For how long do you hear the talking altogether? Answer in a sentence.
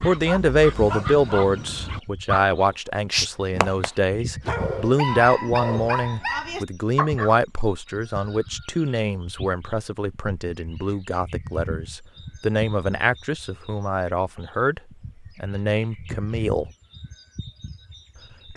You can hear the talking for 16 seconds altogether.